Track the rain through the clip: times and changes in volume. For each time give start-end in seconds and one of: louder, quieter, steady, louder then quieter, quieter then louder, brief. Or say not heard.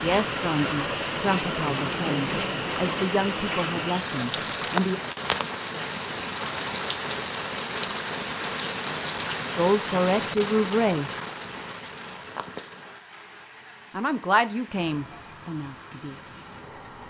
0.0-17.0 quieter.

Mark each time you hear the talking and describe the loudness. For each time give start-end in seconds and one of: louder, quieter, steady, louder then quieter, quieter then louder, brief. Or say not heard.
0.0-5.0 steady
9.6-11.1 brief
13.9-16.3 brief.